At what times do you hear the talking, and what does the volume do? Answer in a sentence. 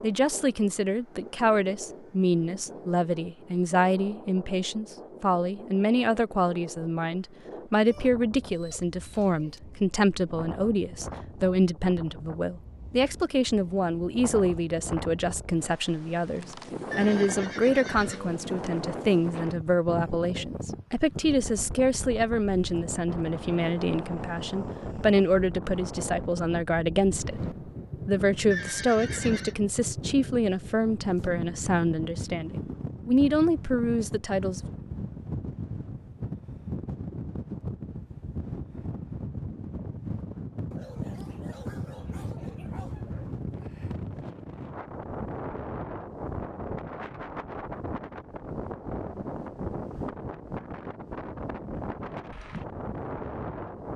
You can hear the talking from 0.0 to 34.6 s, at a steady volume.